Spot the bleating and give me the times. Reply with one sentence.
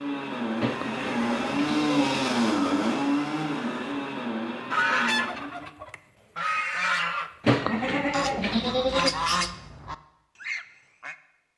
You can hear the bleating from 0.6 to 2.1 s and from 7.4 to 9.1 s.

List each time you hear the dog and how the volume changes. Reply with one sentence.
You can't hear the dog here.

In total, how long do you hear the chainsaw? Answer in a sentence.
The chainsaw can be heard for 6 seconds in total.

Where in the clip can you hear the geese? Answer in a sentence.
The geese can be heard from 4.7 to 11.2 s.